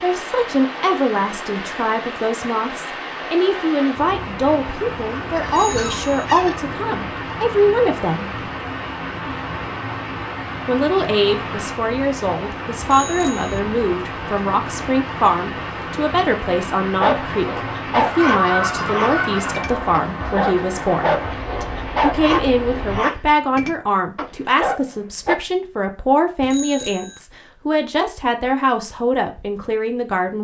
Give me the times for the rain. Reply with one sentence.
The rain can be heard from 0.0 to 23.0 s.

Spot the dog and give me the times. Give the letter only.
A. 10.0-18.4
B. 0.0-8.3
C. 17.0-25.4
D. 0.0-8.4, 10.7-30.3
C.